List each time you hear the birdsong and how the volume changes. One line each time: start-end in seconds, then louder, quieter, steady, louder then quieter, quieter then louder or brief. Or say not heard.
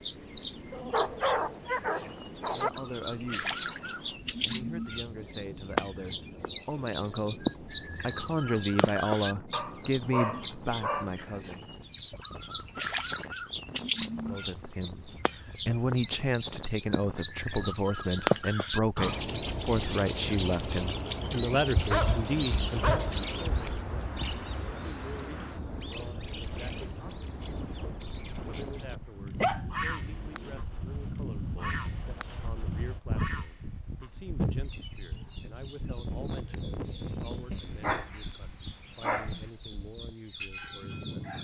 0.0-28.9 quieter
29.7-32.5 brief
33.1-41.3 louder.